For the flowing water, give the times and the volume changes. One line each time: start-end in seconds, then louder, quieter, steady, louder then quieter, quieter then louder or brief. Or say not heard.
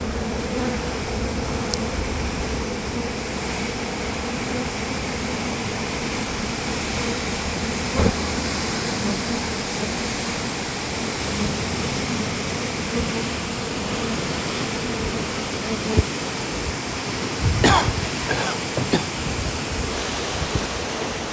0.0-21.2 steady.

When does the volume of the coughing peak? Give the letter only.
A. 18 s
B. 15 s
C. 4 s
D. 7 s
A.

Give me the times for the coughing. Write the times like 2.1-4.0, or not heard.
17.6-19.1.